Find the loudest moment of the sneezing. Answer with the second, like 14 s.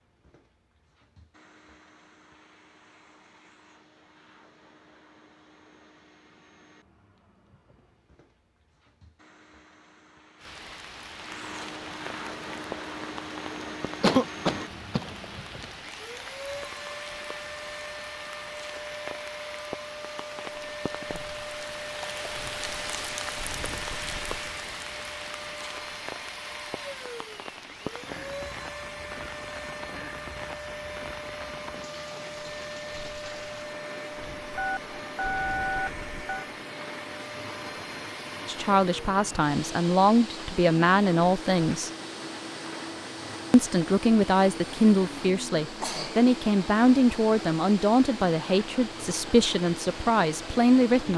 14 s.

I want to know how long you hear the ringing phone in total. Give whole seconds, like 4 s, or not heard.
2 s.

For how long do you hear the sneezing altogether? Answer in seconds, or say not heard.
2 s.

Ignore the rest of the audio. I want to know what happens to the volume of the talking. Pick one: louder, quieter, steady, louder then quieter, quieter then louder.
steady.